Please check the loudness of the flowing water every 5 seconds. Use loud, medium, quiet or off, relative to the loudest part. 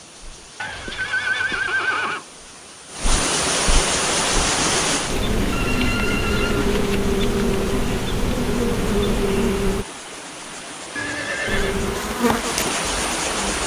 loud, medium, loud.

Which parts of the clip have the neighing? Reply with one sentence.
You can hear the neighing from 0.6 to 2.2 s, from 5.5 to 6.7 s and from 10.9 to 11.8 s.